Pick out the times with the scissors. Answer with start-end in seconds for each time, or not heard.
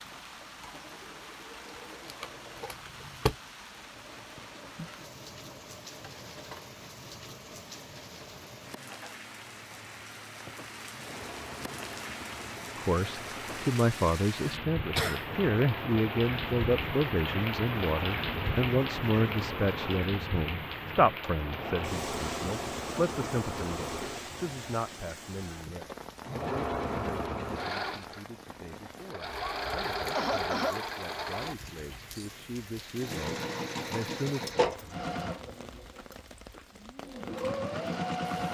2.0-3.4.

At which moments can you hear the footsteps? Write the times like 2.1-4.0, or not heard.
not heard.